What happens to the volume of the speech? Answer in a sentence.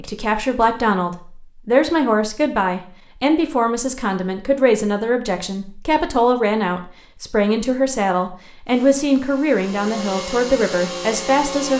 The loudness of the speech stays about the same.